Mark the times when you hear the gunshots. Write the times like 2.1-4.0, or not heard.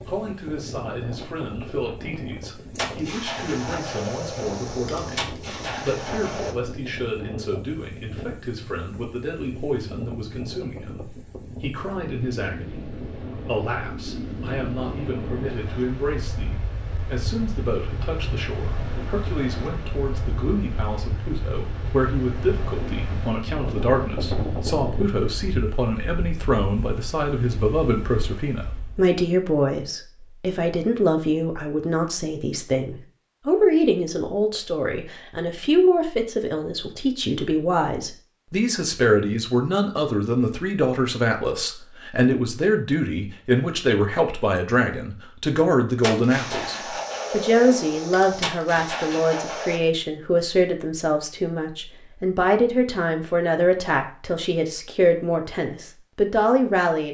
2.8-6.5, 46.0-49.8.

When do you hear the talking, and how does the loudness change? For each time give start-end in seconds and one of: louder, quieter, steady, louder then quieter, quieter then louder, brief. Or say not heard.
0.0-57.0 louder.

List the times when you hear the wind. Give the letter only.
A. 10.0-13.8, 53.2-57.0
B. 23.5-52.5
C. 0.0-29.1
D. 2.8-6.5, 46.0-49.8
C.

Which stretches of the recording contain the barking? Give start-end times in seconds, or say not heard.
not heard.